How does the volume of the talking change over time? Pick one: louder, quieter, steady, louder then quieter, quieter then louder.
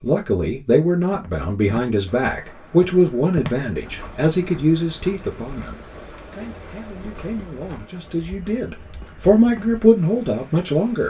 quieter then louder.